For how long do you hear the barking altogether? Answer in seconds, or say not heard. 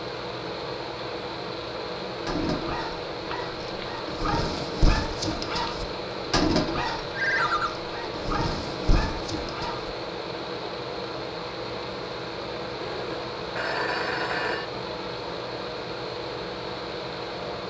8 s.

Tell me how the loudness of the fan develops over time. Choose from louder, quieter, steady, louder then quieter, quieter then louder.
steady.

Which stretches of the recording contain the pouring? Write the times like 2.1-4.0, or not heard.
not heard.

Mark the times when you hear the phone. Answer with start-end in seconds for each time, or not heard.
3.3-3.9, 7.1-7.7, 12.8-14.7.